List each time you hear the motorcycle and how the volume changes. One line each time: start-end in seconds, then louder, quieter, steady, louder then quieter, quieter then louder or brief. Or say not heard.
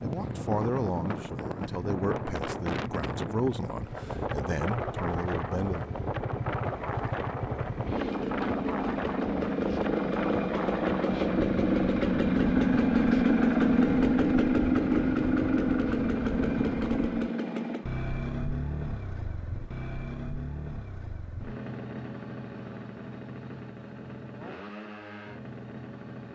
0.0-26.3 louder then quieter.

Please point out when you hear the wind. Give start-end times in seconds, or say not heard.
0.0-17.3.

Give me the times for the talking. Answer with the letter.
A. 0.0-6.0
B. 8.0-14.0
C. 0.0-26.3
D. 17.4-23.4
A.